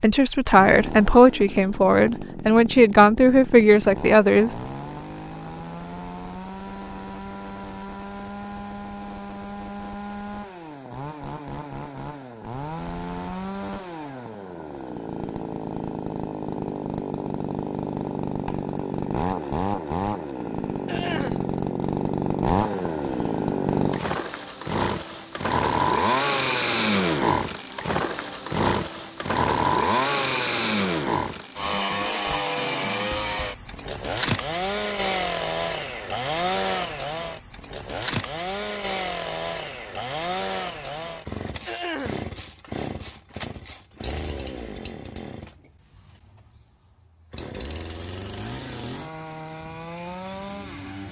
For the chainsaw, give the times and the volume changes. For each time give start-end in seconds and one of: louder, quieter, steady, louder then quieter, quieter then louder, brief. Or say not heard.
0.1-51.0 louder then quieter.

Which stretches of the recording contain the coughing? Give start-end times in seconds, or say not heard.
20.9-21.4, 41.6-42.2.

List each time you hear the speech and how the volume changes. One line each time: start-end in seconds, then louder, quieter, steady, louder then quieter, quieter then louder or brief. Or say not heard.
0.0-4.5 steady.